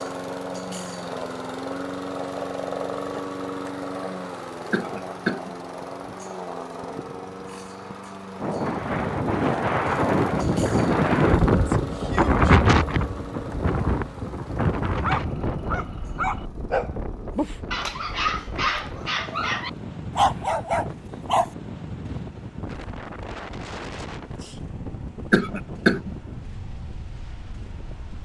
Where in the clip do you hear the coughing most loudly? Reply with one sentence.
The loudest moment of the coughing is at 26 seconds.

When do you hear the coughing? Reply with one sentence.
The coughing can be heard from 4.7 to 5.5 s and from 25.3 to 26.1 s.